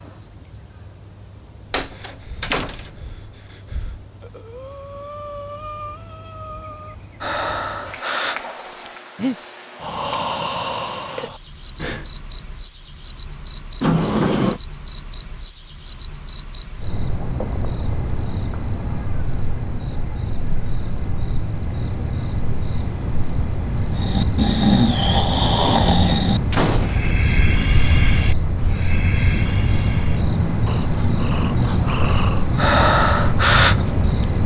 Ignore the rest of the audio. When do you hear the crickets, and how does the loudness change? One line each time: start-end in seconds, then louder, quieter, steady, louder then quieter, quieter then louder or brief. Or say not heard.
0.0-34.4 louder.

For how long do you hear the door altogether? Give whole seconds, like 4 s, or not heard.
3 s.